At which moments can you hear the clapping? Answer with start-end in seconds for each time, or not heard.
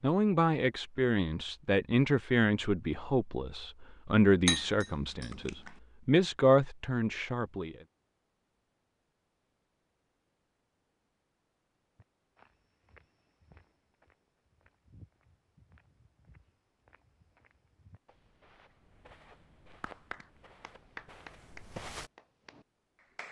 19.8-23.2.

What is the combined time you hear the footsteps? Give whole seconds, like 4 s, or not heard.
10 s.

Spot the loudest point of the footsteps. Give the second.
22 s.